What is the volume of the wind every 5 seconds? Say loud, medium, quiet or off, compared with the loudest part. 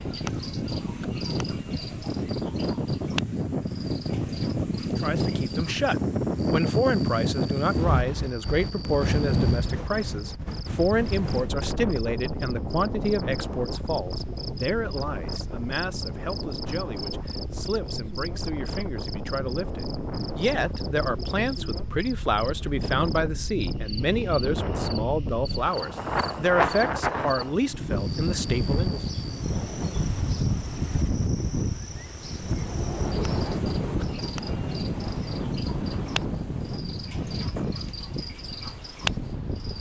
loud, loud, medium, medium, medium, loud, loud, medium.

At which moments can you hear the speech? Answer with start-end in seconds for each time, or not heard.
5.0-29.0.